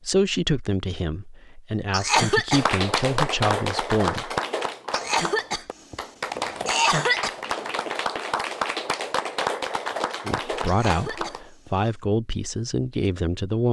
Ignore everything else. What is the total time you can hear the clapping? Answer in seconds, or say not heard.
9 s.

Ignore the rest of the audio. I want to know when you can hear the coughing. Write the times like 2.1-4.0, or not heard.
1.9-2.6, 4.9-7.3, 10.7-11.8.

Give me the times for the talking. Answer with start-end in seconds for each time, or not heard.
0.0-4.3, 10.2-13.6.